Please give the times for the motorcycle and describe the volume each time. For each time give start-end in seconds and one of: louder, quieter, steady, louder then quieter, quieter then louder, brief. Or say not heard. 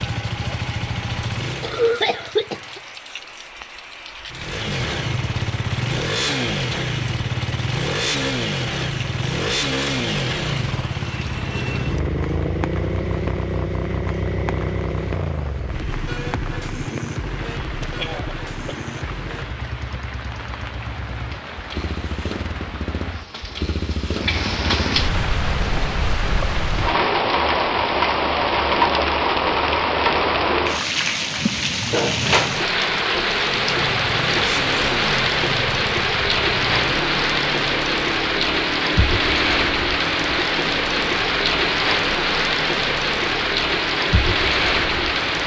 0.0-3.0 brief
4.3-25.3 quieter
33.2-45.4 quieter.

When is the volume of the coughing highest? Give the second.
2 s.